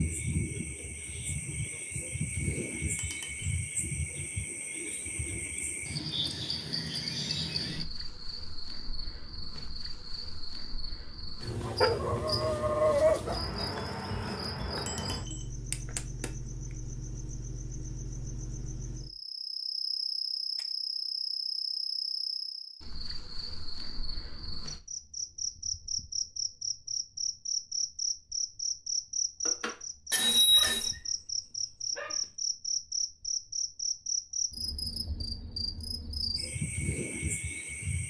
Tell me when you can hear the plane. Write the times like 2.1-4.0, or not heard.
not heard.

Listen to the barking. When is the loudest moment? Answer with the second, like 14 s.
13 s.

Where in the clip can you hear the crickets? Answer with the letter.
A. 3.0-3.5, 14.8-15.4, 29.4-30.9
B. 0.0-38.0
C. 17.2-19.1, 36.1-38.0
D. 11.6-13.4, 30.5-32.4
B.